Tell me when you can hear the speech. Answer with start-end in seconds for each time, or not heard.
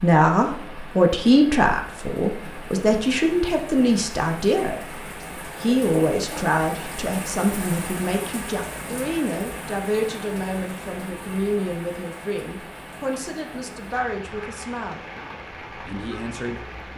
0.0-5.0, 5.6-15.0, 15.8-16.9.